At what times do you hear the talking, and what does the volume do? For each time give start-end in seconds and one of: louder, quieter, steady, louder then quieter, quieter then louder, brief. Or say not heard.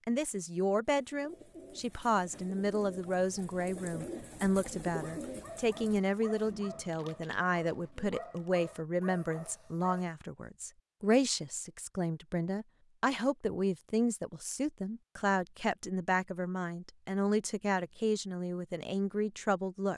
0.1-19.9 steady.